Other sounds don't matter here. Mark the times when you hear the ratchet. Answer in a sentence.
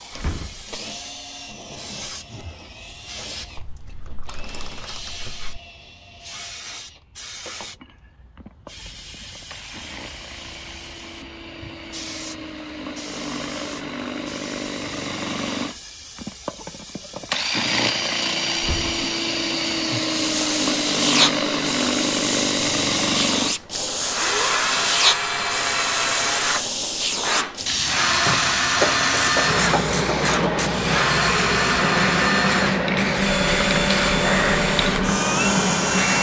You can hear the ratchet from 3.6 to 5.5 s and from 28.8 to 30.7 s.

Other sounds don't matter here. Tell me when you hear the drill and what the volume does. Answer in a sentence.
The drill can be heard from 0.0 to 36.1 s, getting louder.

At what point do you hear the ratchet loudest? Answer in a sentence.
The loudest moment of the ratchet is at 29 seconds.